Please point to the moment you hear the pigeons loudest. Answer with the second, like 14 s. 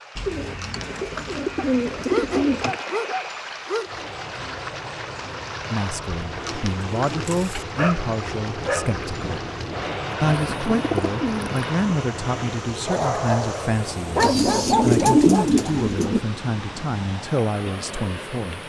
15 s.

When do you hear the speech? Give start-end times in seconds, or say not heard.
5.7-9.3, 10.2-18.6.